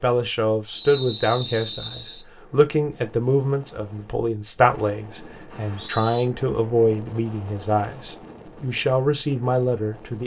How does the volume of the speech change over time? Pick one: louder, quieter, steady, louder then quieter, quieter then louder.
steady.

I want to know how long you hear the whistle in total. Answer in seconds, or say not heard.
2 s.